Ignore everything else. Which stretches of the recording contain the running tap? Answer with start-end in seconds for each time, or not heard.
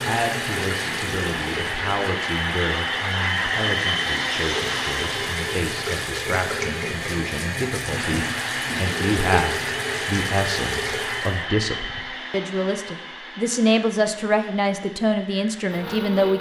0.0-11.4.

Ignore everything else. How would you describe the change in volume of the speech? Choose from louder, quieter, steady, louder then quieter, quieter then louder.
louder.